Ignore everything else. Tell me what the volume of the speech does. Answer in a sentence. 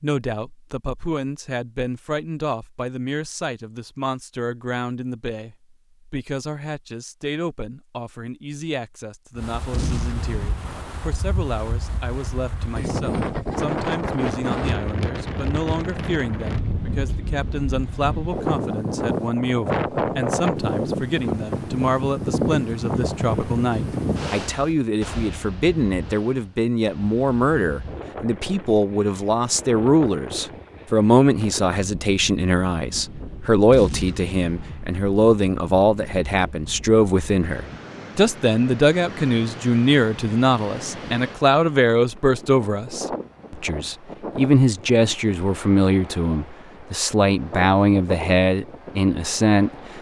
The loudness of the speech goes up.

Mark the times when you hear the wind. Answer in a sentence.
You can hear the wind from 9.3 to 49.9 s.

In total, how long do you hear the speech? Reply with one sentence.
The speech can be heard for 50 seconds in total.